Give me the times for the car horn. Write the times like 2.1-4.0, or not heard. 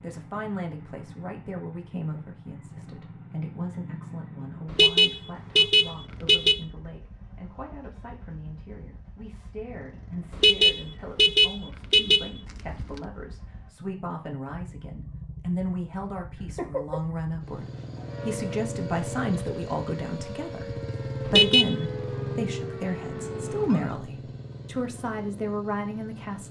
4.7-6.6, 10.3-13.0, 21.2-21.8.